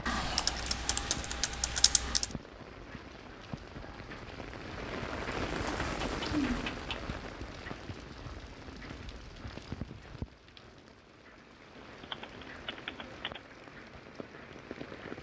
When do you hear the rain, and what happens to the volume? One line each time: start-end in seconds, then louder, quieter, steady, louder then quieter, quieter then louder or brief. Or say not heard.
0.0-15.1 louder then quieter.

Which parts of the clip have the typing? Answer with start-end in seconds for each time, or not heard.
0.1-2.3, 5.7-7.0, 11.8-13.4.